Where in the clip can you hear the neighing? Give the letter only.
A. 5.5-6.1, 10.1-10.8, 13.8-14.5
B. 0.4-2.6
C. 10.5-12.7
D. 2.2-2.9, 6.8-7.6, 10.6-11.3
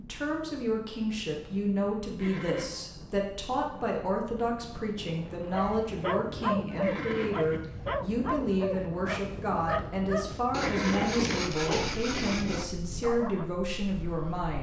D.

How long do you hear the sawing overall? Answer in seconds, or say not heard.
2 s.